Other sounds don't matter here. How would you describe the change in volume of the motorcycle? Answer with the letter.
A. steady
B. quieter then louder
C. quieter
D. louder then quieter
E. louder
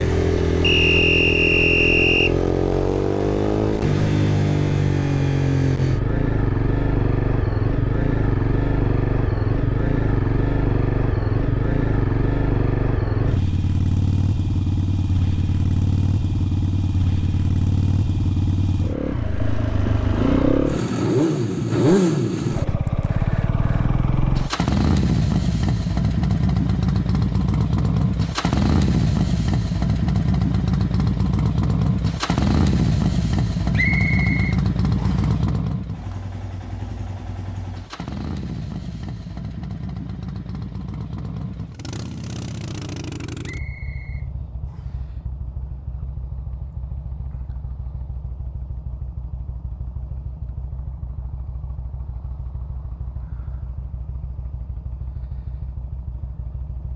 C.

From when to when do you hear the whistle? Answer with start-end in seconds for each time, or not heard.
0.6-2.4, 33.8-35.3, 43.4-45.0.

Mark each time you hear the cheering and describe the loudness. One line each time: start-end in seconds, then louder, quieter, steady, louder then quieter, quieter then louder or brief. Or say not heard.
not heard.